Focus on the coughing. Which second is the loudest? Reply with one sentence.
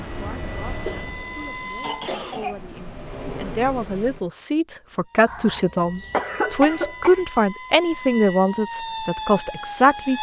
The volume of the coughing peaks at 6 seconds.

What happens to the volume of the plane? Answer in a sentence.
The loudness of the plane goes down, then up.